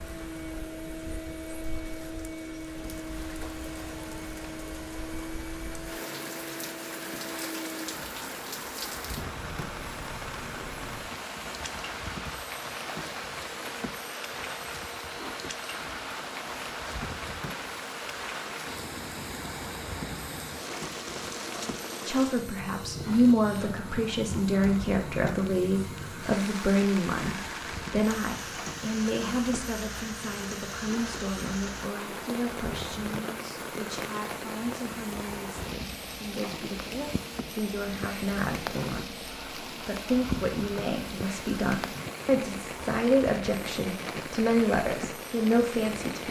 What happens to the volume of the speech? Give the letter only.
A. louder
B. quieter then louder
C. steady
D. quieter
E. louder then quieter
B.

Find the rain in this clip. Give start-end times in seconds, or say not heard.
0.0-46.2.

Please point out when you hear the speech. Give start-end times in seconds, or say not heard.
22.1-46.2.